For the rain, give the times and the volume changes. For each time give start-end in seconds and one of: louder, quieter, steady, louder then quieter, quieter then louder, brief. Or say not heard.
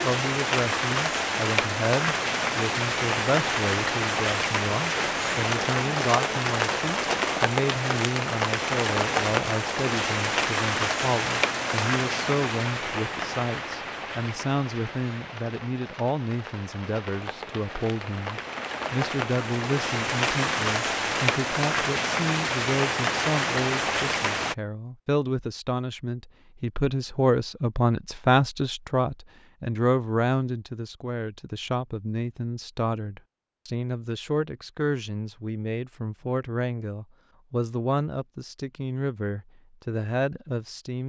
0.0-24.6 quieter then louder.